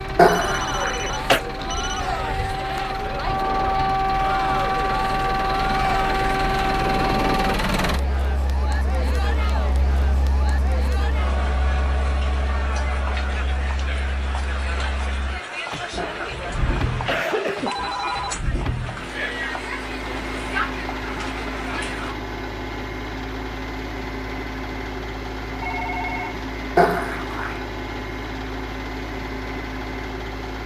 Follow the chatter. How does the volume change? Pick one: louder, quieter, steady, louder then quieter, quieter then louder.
steady.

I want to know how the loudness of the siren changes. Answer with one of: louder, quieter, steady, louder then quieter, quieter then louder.
louder.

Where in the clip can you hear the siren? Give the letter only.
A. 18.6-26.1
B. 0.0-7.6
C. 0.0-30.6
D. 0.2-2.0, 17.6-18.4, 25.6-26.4
B.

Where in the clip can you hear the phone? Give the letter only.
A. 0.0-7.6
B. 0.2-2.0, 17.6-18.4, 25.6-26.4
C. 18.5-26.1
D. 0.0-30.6
B.